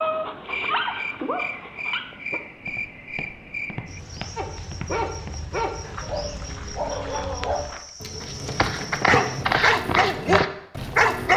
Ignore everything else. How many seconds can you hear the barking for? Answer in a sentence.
The barking can be heard for 9 seconds in total.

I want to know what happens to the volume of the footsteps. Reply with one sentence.
The loudness of the footsteps goes up.